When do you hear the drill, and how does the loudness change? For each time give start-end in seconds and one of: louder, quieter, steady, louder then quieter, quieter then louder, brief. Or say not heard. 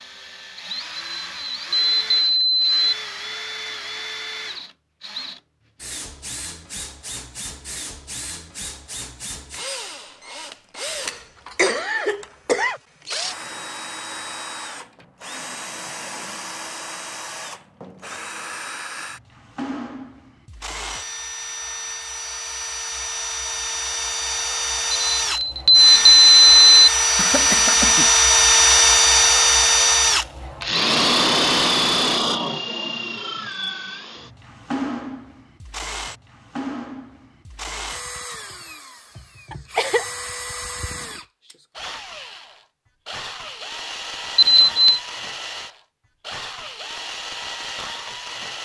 0.0-48.5 louder then quieter.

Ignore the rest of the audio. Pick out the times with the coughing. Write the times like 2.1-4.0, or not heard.
10.9-12.8, 27.1-28.1, 39.5-40.0.